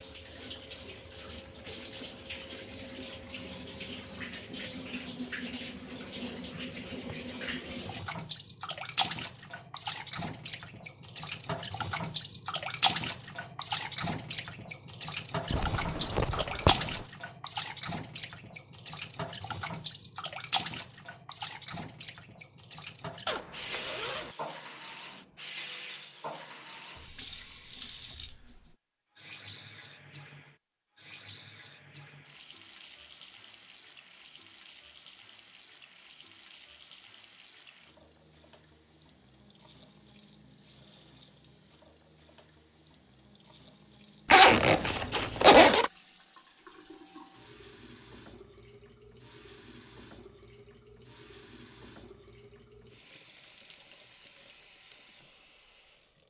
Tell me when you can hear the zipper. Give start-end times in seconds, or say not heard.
15.5-17.1, 23.2-24.4, 44.3-45.9.